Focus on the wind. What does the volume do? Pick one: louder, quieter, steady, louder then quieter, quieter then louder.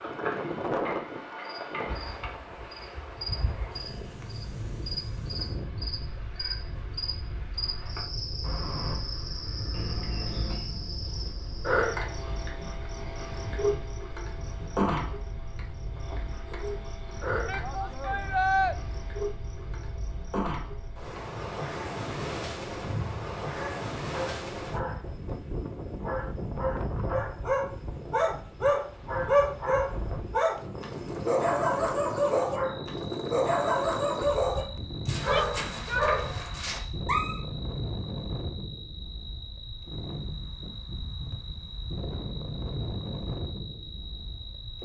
quieter then louder.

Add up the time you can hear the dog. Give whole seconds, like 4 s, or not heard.
10 s.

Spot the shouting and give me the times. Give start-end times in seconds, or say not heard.
17.4-18.8, 35.1-36.1.